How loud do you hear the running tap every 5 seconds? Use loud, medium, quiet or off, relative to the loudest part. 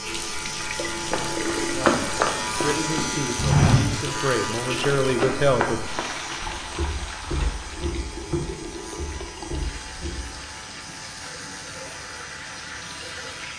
loud, loud, medium.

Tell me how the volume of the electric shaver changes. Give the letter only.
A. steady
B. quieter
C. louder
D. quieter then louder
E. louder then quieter
B.